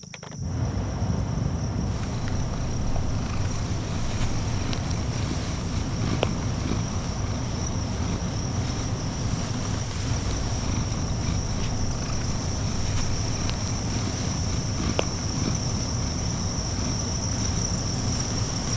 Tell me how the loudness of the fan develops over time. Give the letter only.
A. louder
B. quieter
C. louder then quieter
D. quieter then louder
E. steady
E.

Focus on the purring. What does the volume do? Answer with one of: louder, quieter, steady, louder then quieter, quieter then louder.
steady.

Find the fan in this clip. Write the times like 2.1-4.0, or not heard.
0.0-18.7.